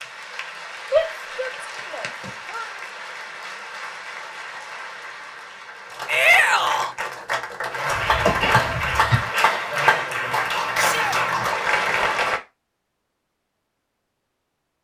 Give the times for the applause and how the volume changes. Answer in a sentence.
The applause can be heard from 0.0 to 12.4 s, getting louder.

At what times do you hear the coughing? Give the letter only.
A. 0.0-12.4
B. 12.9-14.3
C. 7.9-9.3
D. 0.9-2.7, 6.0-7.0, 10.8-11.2
C.